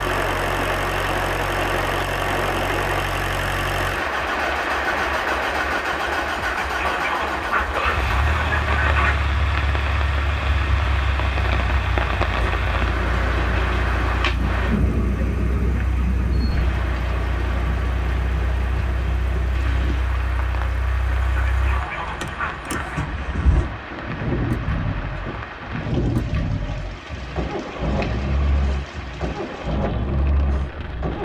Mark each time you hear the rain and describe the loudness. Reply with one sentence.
You can hear the rain from 0.0 to 31.1 s, getting quieter.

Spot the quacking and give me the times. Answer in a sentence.
You can hear the quacking from 6.3 to 9.2 s and from 21.2 to 23.1 s.